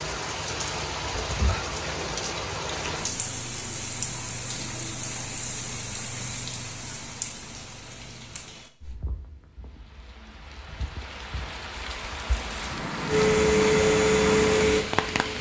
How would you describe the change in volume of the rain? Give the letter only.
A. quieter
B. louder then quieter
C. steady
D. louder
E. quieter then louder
E.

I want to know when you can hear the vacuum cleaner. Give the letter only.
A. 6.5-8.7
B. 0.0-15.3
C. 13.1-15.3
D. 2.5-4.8
C.